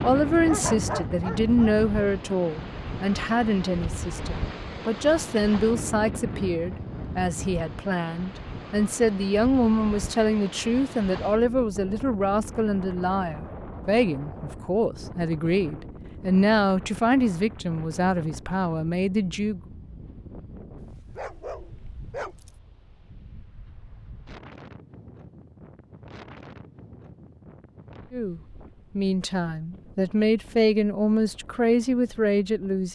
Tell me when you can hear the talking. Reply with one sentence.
You can hear the talking from 0.0 to 19.6 s and from 28.1 to 32.8 s.